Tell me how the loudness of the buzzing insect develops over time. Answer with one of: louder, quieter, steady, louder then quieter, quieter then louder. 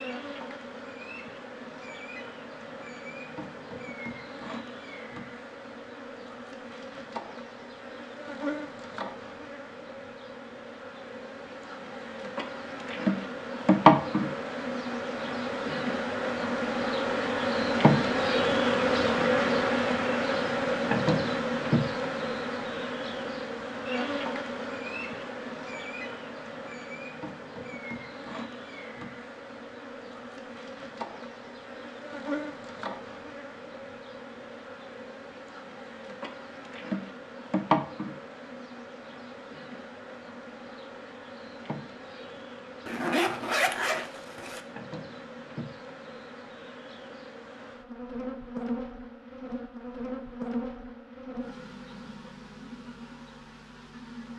louder then quieter.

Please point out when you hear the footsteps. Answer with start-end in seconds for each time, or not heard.
not heard.